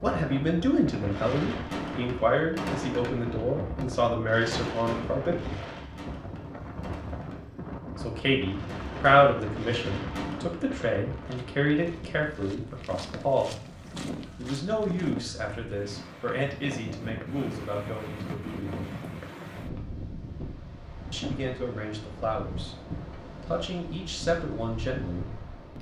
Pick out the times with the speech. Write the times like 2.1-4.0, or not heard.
0.0-5.6, 8.0-13.6, 14.3-18.9, 21.1-25.7.